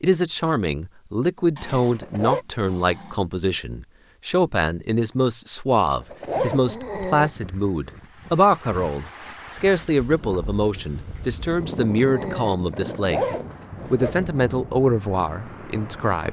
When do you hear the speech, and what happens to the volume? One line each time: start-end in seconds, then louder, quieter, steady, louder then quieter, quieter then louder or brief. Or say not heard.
0.0-16.2 steady.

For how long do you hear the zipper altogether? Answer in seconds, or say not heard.
3 s.